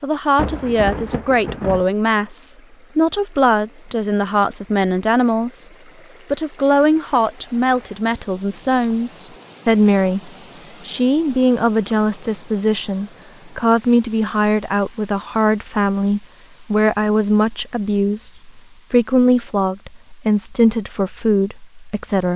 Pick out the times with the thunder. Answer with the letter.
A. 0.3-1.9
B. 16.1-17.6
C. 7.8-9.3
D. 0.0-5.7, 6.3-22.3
A.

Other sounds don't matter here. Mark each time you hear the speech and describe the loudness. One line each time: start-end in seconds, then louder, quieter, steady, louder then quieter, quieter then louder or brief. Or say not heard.
0.0-5.7 steady
6.3-22.3 steady.